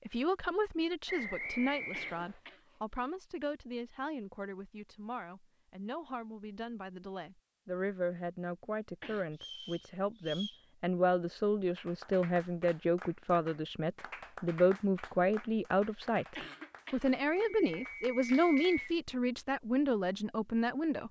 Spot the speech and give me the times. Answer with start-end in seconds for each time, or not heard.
0.1-21.0.